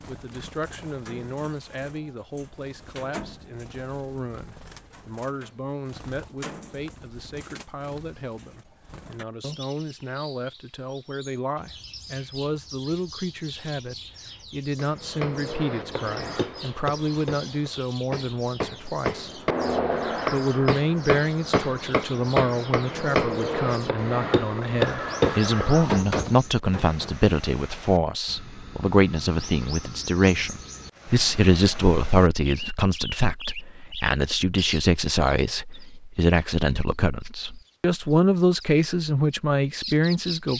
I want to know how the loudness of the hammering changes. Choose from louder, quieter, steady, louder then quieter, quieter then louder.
louder.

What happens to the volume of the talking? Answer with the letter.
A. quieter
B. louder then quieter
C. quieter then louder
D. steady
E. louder
E.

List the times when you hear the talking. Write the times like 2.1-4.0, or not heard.
0.1-19.4, 20.3-40.5.